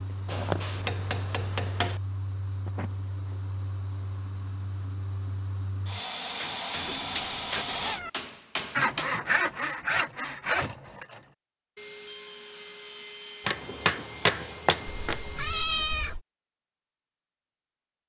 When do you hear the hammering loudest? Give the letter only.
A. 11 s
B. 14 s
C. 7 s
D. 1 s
B.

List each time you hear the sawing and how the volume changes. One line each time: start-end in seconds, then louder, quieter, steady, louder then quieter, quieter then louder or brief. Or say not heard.
8.8-15.7 quieter.